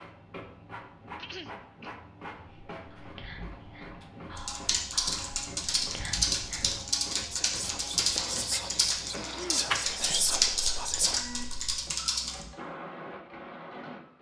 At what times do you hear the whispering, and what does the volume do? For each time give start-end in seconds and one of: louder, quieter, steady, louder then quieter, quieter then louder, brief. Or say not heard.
2.5-11.2 louder.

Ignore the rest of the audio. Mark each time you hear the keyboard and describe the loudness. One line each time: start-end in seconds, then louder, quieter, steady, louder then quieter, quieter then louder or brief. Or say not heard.
4.3-12.4 steady.